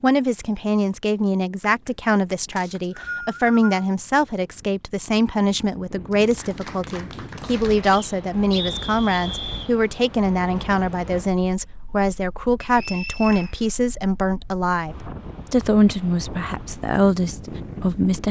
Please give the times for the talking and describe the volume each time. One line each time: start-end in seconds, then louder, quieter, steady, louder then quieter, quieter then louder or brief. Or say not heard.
0.0-18.2 steady.